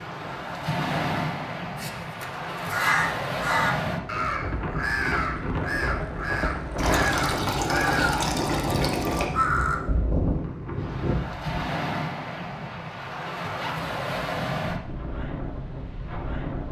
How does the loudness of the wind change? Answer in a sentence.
The volume of the wind stays about the same.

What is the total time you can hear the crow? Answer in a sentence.
You can hear the crow for 10 seconds altogether.